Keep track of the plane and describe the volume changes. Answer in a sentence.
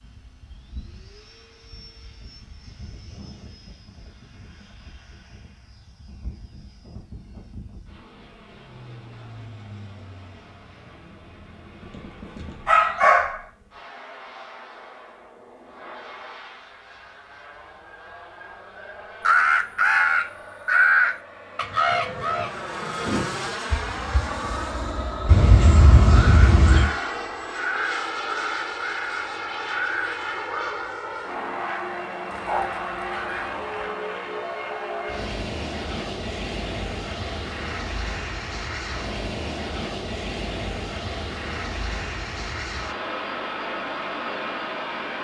The volume of the plane goes up.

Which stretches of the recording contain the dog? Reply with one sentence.
You can hear the dog from 11.9 to 13.4 s, from 25.2 to 26.9 s and from 32.3 to 34.0 s.